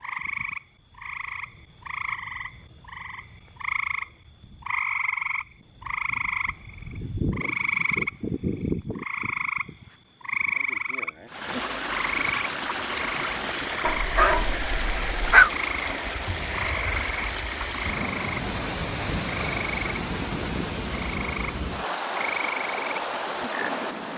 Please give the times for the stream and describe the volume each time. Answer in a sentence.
The stream can be heard from 11.2 to 24.1 s, at a steady volume.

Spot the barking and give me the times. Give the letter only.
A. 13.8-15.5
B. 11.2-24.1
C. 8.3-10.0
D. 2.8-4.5
A.